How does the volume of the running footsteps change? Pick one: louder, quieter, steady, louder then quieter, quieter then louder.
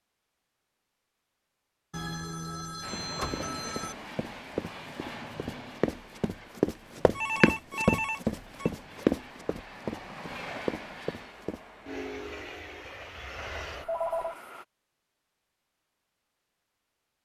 louder then quieter.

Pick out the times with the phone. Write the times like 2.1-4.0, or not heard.
1.9-4.0, 7.2-8.7, 13.7-14.3.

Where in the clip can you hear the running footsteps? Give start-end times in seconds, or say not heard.
2.9-11.6.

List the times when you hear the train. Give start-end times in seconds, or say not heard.
2.8-14.7.